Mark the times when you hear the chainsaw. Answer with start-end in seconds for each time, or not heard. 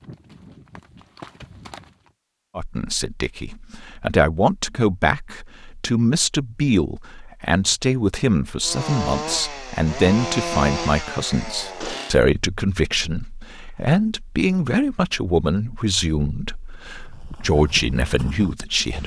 8.6-12.2.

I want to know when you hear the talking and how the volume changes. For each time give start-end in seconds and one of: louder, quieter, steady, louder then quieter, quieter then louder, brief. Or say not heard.
2.5-19.0 steady.